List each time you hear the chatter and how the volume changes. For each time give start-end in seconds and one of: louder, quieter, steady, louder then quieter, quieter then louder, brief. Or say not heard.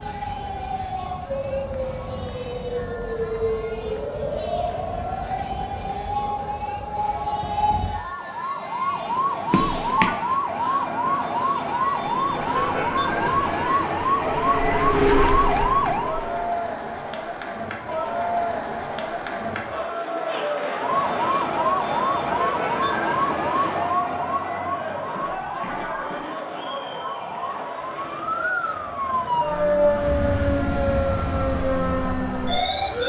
0.0-33.0 louder then quieter.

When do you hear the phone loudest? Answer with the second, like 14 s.
10 s.